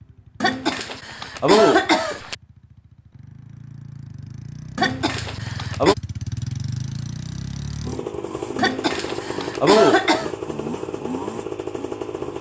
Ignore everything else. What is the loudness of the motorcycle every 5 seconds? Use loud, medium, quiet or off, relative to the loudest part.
quiet, loud, loud.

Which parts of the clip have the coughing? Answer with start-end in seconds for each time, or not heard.
0.4-2.4, 4.8-6.0, 8.6-10.3.